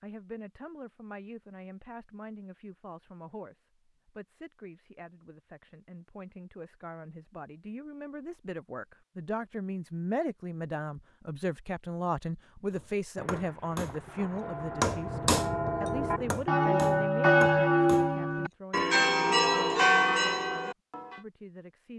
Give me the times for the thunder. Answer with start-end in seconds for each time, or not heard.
13.2-16.5.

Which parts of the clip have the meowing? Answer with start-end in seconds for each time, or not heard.
not heard.